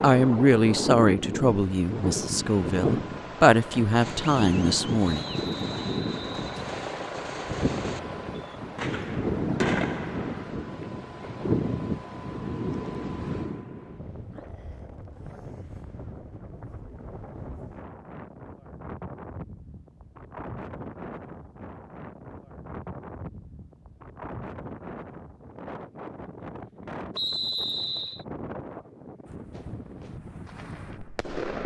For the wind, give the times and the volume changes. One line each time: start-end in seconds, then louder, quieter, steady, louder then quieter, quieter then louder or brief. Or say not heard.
0.0-31.4 quieter.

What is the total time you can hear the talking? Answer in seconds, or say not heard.
5 s.